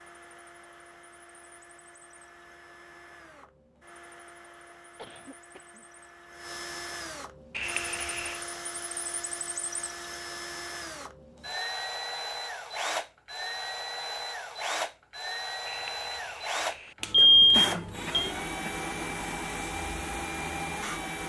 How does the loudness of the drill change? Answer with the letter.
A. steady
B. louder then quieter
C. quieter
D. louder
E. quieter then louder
D.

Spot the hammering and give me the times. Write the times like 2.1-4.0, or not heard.
not heard.